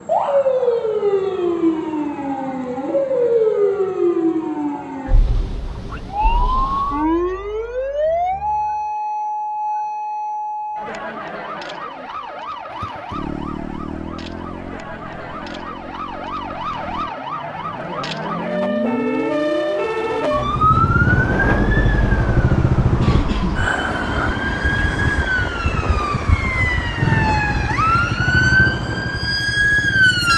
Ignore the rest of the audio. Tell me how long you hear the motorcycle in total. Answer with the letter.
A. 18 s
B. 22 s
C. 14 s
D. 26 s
C.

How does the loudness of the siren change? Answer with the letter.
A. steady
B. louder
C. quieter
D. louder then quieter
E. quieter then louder
E.